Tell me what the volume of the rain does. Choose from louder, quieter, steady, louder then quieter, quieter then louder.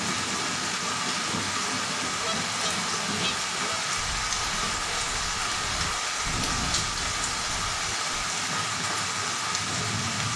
steady.